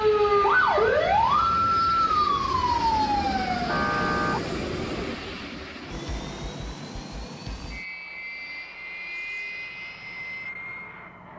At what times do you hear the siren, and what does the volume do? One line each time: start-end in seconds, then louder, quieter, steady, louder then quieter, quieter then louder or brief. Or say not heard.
0.0-4.4 quieter.